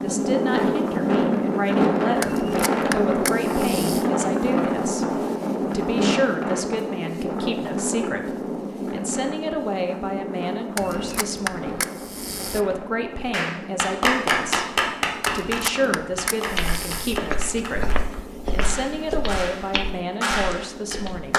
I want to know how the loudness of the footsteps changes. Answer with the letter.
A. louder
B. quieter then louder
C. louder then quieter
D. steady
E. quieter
E.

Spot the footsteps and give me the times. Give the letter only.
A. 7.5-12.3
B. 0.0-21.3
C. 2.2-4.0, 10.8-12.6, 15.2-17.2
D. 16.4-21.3
D.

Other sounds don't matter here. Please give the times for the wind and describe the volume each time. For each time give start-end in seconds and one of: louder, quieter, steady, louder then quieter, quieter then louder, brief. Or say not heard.
0.0-21.3 quieter.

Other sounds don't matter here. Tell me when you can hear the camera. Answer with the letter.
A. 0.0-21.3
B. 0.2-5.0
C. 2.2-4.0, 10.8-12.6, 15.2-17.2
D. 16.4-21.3
C.